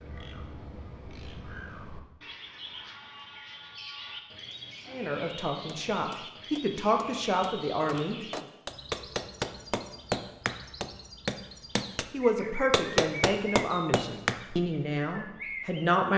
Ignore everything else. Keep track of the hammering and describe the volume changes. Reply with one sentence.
The loudness of the hammering goes up.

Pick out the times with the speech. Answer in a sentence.
The speech can be heard from 4.9 to 8.4 s and from 12.1 to 16.1 s.